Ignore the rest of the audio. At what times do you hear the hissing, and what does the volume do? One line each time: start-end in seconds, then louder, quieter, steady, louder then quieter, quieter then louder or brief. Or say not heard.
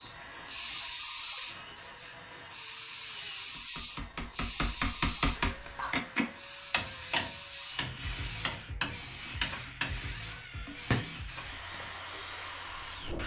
0.0-13.2 quieter.